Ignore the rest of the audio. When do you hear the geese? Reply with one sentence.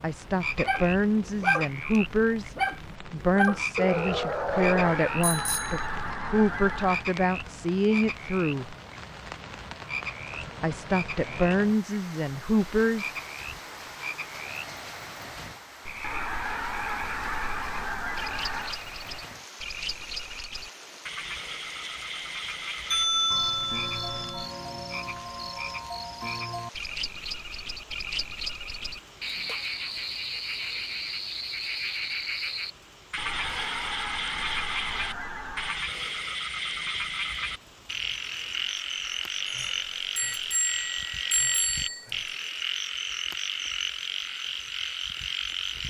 The geese can be heard from 4.5 to 7.1 s, from 16.0 to 18.8 s and from 33.1 to 35.9 s.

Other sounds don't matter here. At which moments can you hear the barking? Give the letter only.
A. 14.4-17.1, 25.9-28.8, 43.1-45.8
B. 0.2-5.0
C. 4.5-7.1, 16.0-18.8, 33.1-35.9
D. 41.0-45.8
B.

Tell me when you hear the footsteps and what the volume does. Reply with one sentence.
The footsteps can't be heard in this clip.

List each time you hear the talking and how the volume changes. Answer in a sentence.
The talking can be heard from 0.0 to 8.8 s, at a steady volume; and briefly from 10.6 to 13.2 s.